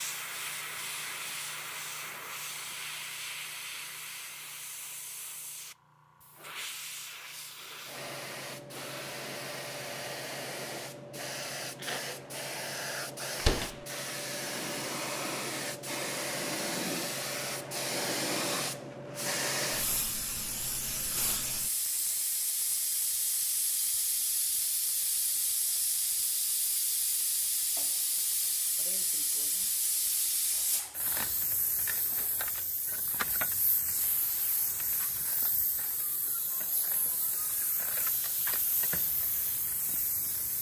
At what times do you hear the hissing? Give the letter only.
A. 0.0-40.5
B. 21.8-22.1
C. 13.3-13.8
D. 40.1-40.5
A.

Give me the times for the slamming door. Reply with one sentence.
You can hear the slamming door from 13.3 to 13.8 s.